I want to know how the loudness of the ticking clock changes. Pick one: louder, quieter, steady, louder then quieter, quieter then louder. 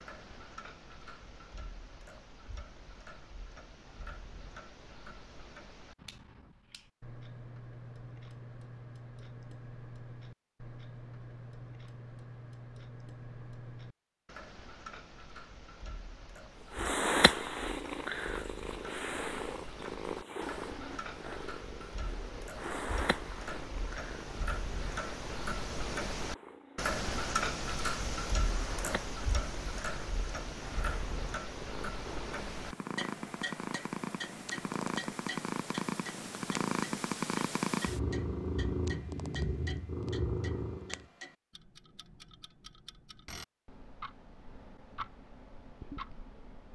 louder then quieter.